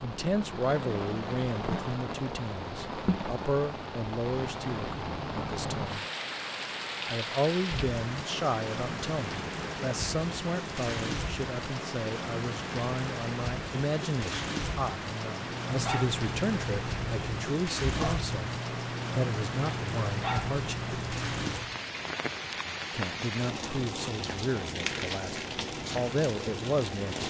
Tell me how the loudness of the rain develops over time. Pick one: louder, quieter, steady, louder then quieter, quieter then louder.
steady.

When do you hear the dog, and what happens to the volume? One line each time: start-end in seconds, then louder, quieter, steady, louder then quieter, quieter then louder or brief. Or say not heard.
15.3-21.8 steady.